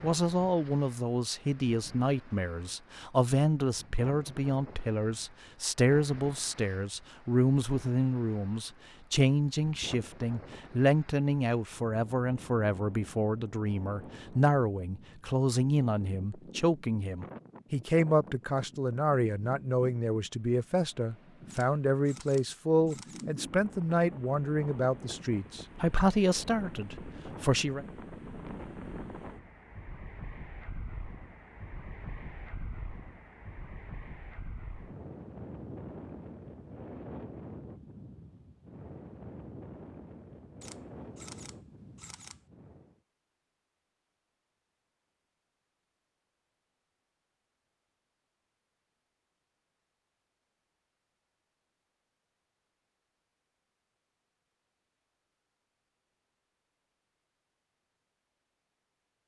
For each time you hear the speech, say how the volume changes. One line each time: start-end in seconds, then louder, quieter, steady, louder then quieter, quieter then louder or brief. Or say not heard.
0.0-27.9 steady.